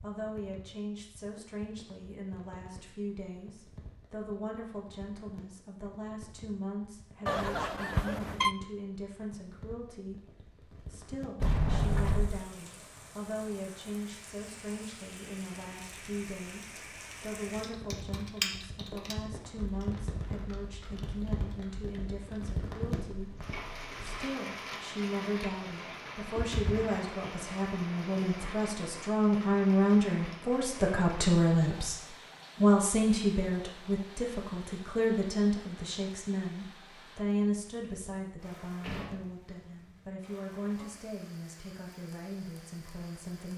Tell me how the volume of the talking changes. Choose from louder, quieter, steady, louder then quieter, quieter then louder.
louder then quieter.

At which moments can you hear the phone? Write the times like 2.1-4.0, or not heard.
7.2-8.6.